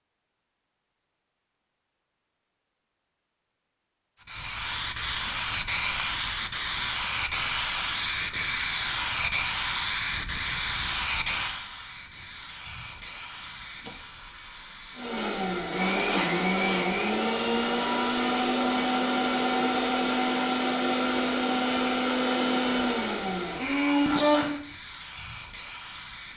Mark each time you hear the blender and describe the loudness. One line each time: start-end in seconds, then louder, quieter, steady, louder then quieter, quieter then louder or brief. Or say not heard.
14.9-24.6 steady.